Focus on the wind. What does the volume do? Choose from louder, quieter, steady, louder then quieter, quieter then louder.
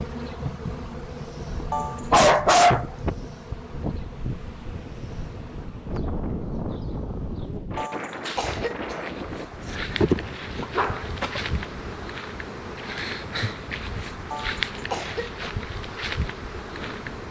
quieter.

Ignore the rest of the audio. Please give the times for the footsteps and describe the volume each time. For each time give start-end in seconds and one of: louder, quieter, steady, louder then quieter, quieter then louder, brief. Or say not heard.
not heard.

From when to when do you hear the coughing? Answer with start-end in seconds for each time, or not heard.
1.7-2.2, 7.8-9.8, 14.3-15.3.